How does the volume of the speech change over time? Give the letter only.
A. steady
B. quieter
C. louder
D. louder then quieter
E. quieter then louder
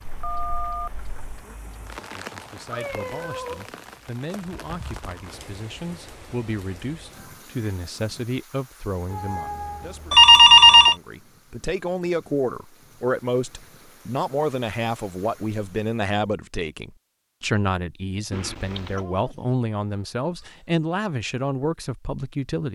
C.